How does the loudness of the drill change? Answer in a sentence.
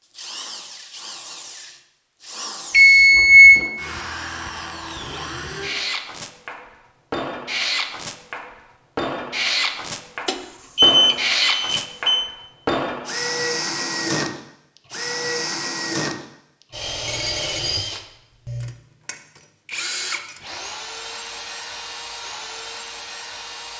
The loudness of the drill goes up, then down.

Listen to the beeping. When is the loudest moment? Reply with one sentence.
The loudest moment of the beeping is at 3 seconds.